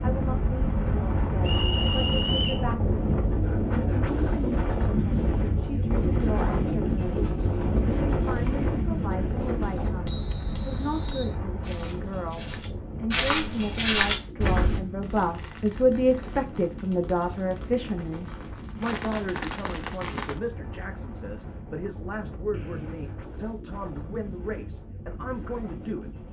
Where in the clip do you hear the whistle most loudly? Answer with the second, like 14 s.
2 s.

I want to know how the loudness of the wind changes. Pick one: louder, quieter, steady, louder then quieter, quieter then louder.
quieter.